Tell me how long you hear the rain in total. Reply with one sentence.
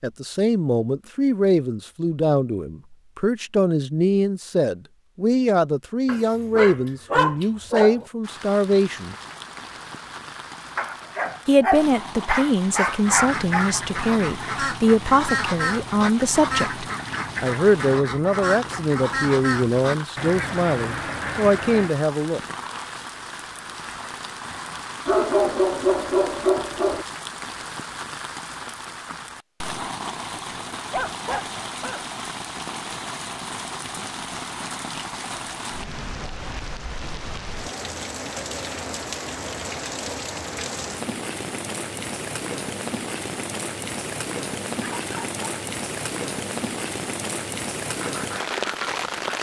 You can hear the rain for 41 seconds altogether.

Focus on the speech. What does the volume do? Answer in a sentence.
The loudness of the speech stays about the same.